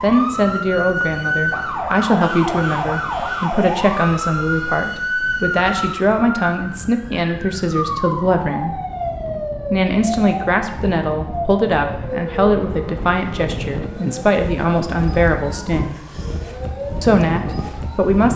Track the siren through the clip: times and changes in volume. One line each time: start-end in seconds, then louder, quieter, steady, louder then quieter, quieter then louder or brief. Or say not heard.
0.0-18.2 quieter.